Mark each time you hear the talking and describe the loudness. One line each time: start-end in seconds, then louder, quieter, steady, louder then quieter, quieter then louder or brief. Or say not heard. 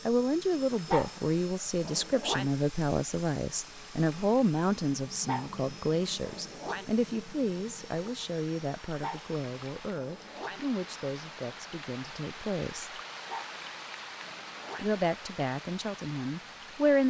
0.1-13.0 quieter
14.8-17.0 brief.